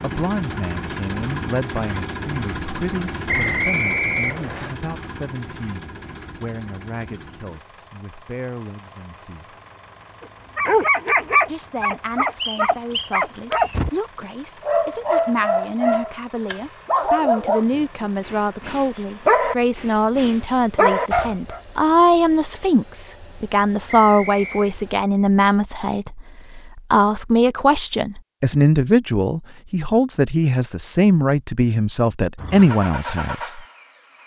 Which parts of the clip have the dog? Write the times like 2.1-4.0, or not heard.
10.6-13.9, 14.6-21.6.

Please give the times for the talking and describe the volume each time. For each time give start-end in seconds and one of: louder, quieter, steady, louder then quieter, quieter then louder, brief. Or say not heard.
0.0-9.6 quieter
11.4-33.6 louder.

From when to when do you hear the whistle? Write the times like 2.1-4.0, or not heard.
3.2-4.8, 12.4-13.8, 23.9-24.8.